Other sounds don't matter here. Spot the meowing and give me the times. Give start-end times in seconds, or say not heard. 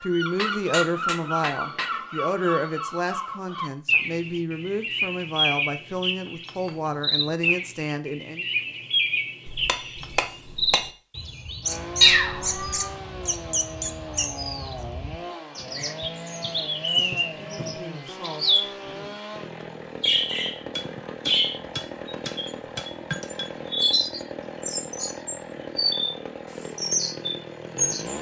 12.0-12.9.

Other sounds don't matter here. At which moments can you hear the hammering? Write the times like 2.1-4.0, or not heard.
0.3-2.0, 9.4-10.9, 20.8-23.5.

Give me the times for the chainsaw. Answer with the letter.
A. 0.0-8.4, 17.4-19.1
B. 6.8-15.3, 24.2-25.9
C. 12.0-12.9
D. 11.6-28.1
D.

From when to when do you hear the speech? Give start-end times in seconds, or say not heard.
0.0-8.4, 17.4-19.1.